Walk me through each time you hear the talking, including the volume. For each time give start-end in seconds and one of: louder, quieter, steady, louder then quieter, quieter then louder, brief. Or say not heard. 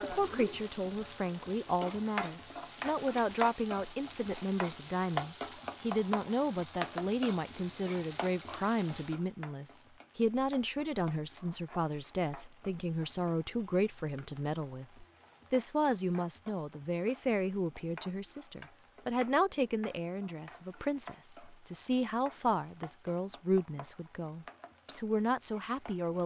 0.0-26.2 steady.